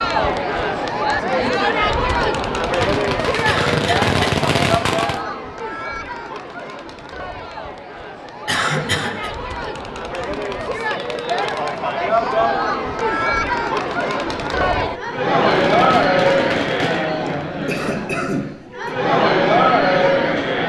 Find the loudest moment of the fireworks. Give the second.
4 s.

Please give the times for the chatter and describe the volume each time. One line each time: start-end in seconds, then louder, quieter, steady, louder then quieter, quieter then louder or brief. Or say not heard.
0.0-20.6 quieter then louder.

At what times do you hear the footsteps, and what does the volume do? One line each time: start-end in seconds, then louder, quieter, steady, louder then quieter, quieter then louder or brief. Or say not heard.
not heard.